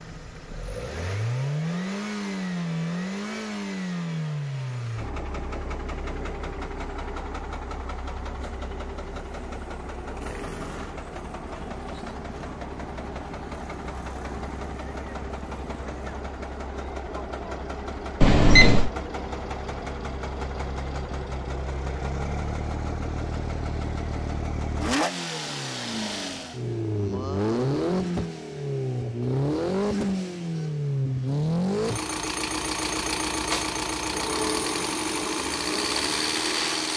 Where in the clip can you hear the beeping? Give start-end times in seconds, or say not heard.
18.2-18.9.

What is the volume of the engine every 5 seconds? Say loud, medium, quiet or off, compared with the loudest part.
loud, medium, medium, medium, medium, loud, loud, loud.